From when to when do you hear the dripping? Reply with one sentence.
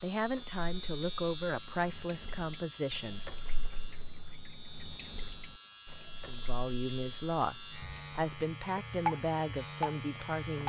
The dripping can be heard from 0.1 to 10.6 s.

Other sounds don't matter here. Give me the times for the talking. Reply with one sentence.
The talking can be heard from 0.0 to 3.2 s and from 6.2 to 10.6 s.